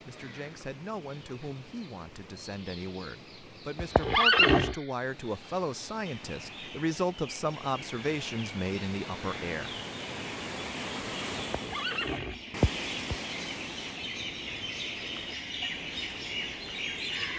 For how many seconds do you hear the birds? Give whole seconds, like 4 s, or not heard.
17 s.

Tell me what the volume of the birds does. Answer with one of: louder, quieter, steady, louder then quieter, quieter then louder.
louder.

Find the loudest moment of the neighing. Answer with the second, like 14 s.
4 s.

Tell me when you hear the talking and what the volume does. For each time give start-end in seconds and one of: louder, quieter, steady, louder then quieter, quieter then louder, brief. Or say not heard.
0.1-9.7 louder.